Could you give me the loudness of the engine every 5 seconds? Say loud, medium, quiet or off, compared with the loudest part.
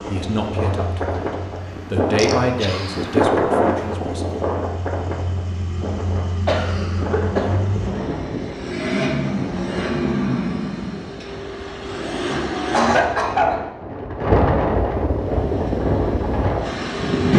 quiet, loud, loud, loud.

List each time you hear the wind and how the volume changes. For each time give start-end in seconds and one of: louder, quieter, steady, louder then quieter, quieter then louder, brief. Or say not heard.
0.0-17.1 quieter then louder.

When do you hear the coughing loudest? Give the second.
13 s.